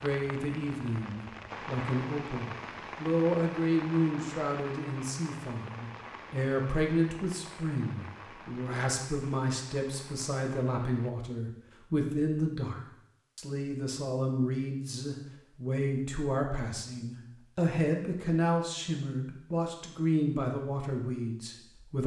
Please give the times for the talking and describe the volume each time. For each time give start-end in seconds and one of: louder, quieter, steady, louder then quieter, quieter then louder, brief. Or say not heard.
0.0-22.0 steady.